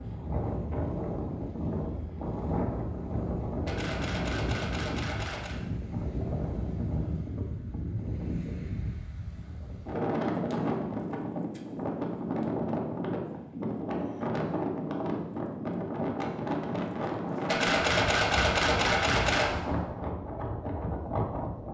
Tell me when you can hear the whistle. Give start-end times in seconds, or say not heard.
not heard.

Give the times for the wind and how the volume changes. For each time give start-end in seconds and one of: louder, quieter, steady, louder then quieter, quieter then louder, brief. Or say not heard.
0.0-21.6 steady.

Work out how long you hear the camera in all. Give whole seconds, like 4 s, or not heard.
4 s.